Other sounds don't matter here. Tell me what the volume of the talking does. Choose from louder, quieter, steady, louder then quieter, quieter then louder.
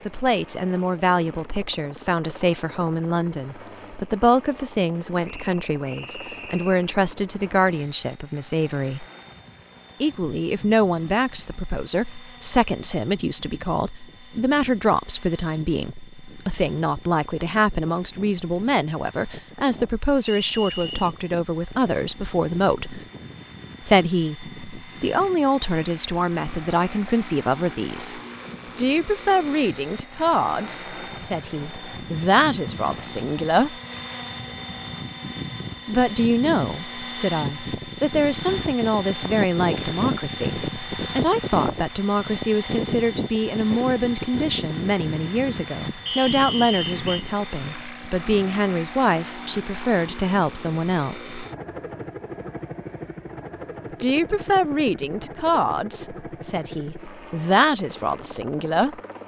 steady.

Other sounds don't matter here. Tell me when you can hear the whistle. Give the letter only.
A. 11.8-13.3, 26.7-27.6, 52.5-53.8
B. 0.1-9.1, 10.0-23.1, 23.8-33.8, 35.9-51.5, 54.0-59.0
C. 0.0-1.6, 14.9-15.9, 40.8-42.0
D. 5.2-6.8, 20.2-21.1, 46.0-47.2
D.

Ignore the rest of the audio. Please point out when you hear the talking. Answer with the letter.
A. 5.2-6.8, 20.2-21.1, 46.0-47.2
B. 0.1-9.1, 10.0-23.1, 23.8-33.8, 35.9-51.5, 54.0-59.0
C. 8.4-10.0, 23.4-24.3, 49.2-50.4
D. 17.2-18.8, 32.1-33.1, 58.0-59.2
B.